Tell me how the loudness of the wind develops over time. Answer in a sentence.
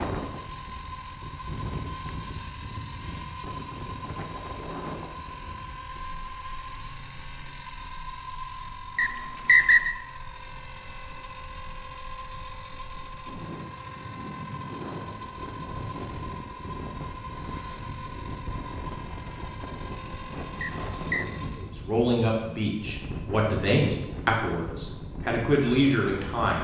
The loudness of the wind goes down, then up.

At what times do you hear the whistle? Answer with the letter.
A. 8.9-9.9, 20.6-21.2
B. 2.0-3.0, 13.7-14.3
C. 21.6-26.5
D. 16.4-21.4
A.